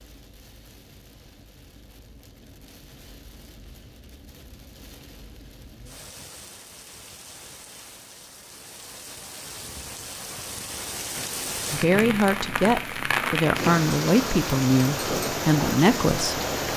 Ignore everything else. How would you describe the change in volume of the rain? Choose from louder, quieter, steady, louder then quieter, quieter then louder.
louder.